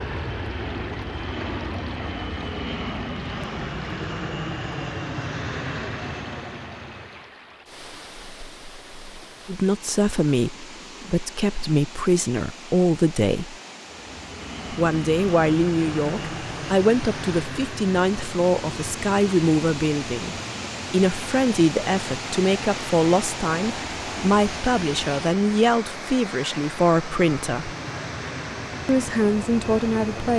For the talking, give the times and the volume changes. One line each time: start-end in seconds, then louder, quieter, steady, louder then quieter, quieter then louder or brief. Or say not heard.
9.4-13.6 quieter then louder
14.7-27.7 steady
28.9-30.3 brief.